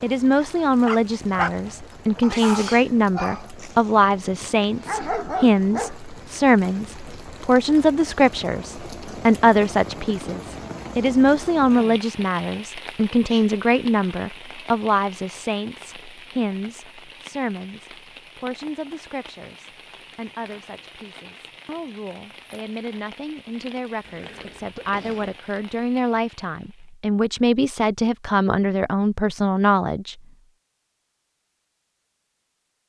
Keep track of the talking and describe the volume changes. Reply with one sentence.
The volume of the talking goes down, then up.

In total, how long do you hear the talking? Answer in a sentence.
The talking can be heard for 30 seconds in total.